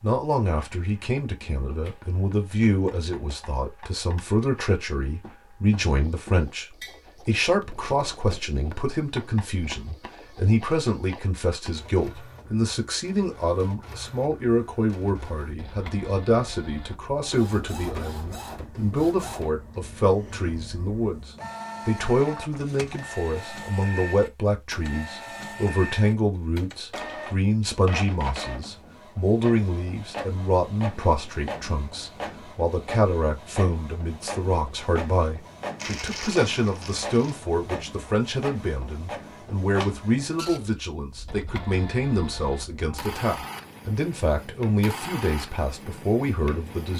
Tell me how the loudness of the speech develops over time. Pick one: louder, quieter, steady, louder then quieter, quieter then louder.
steady.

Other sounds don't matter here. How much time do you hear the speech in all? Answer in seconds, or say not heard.
46 s.